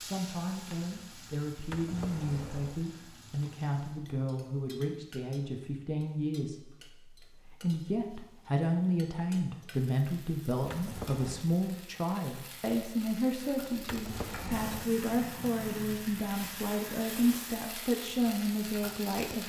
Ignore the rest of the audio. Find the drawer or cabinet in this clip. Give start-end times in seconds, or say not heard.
1.6-2.8, 10.6-11.4, 13.8-14.9.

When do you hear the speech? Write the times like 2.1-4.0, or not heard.
0.0-19.4.